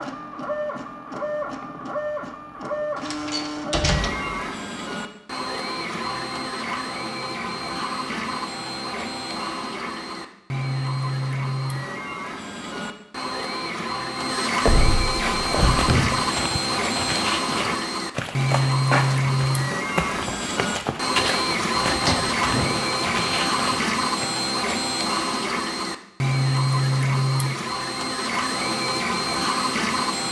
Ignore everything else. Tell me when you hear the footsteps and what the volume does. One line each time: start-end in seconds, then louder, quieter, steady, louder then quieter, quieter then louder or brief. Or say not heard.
15.2-24.2 steady.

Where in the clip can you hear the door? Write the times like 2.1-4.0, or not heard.
3.0-4.4, 14.7-16.1, 21.8-22.9.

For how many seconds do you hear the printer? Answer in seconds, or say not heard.
30 s.